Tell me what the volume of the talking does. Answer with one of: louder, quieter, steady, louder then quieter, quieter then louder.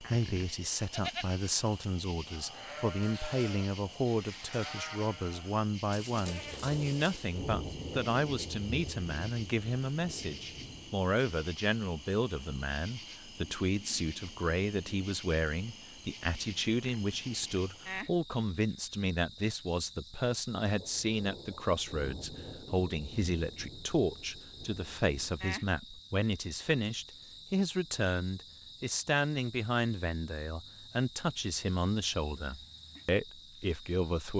steady.